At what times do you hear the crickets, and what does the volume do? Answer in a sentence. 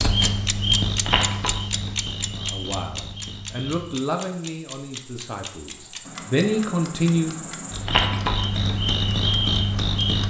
You can hear the crickets from 0.0 to 10.2 s, getting quieter then louder.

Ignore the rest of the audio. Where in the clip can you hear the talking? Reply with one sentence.
You can hear the talking from 2.3 to 7.3 s.